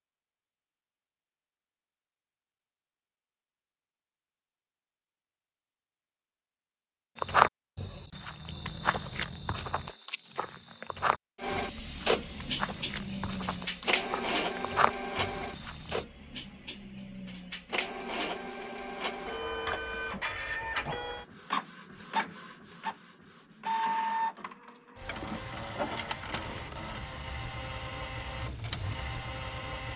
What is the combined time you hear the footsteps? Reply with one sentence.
You can hear the footsteps for 9 seconds altogether.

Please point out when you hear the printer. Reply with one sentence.
The printer can be heard from 11.4 to 29.9 s.